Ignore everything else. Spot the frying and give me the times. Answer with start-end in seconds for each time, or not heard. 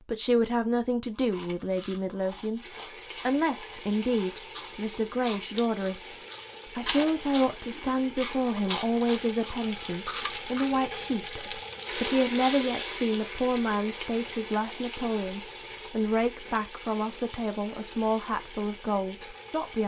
2.6-19.8.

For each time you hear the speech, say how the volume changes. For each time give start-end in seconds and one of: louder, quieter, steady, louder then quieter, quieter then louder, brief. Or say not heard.
0.1-19.8 steady.